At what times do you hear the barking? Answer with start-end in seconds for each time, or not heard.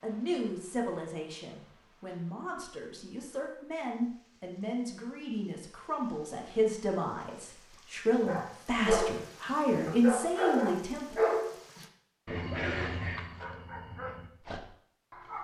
8.2-15.3.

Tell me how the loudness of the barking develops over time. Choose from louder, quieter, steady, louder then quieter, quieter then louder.
quieter.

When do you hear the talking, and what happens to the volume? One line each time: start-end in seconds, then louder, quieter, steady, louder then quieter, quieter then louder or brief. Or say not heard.
0.0-11.2 louder.